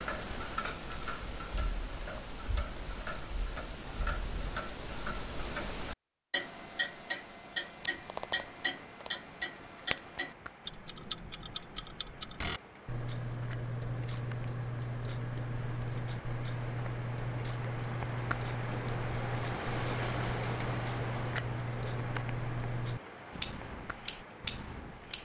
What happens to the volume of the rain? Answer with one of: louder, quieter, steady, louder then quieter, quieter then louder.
louder then quieter.